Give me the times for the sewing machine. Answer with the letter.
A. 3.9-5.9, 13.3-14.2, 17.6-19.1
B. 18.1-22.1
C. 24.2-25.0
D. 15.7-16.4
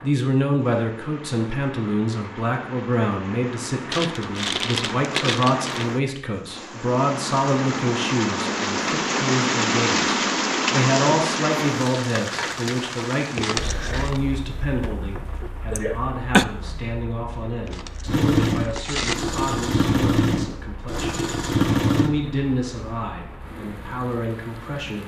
B.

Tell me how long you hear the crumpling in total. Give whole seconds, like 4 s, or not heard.
4 s.